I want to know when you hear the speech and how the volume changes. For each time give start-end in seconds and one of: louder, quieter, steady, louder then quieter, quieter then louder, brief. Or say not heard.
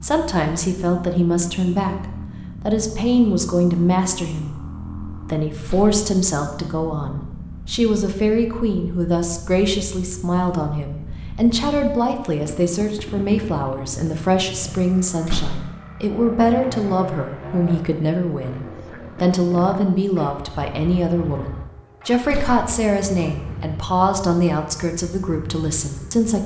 0.0-26.4 steady.